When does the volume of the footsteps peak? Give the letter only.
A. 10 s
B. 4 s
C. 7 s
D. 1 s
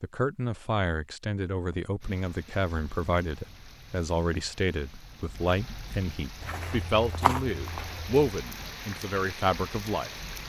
C.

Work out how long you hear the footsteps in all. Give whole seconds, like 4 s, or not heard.
2 s.